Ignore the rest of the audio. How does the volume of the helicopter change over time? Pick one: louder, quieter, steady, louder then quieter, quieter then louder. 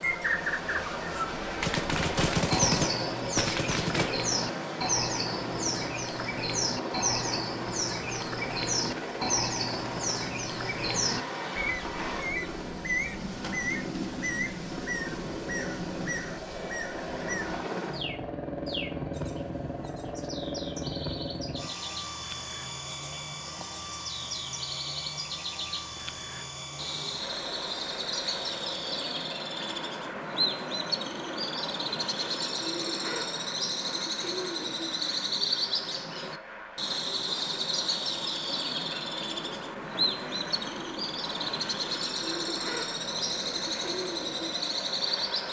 quieter.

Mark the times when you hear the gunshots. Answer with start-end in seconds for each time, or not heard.
1.6-4.2.